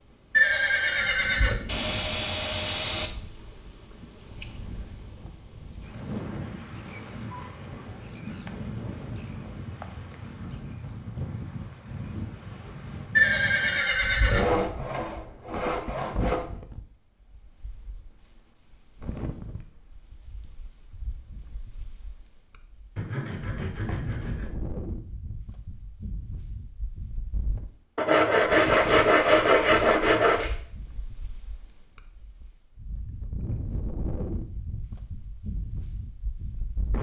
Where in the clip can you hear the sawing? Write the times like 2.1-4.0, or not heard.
1.6-3.1, 14.3-16.4, 22.9-24.5, 27.9-30.5.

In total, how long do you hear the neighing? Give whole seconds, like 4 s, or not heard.
5 s.